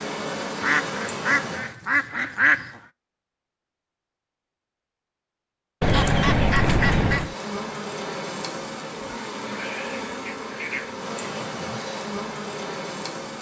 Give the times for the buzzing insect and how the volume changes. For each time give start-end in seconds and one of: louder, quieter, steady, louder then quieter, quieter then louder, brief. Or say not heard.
0.0-1.8 brief
7.2-13.3 steady.